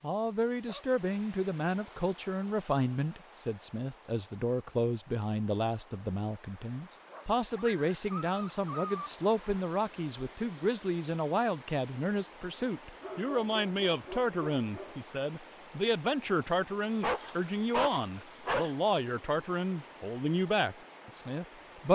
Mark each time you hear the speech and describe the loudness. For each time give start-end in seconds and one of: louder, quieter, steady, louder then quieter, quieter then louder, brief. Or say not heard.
0.0-21.9 steady.